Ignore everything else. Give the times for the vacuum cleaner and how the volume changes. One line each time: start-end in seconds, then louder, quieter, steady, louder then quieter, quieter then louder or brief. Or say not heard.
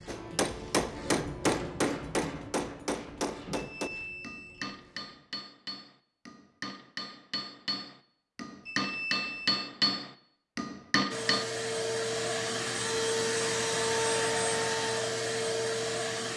11.1-16.3 steady.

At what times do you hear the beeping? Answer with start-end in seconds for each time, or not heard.
3.5-4.7, 8.7-9.6.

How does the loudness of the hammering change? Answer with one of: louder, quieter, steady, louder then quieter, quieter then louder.
quieter then louder.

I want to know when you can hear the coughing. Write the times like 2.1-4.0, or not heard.
not heard.